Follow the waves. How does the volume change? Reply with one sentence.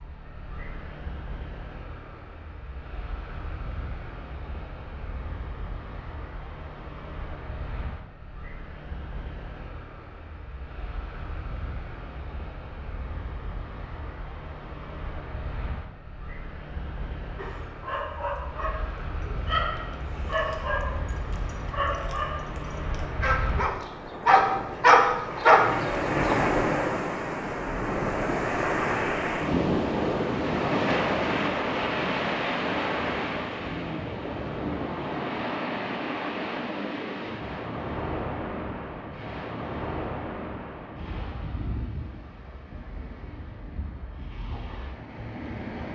The volume of the waves goes up, then down.